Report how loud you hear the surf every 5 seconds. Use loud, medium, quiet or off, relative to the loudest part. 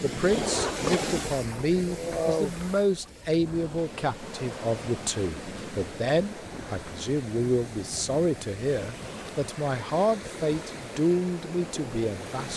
loud, medium, medium.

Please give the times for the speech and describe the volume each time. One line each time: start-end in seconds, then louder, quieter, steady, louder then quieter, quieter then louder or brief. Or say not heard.
0.0-12.5 steady.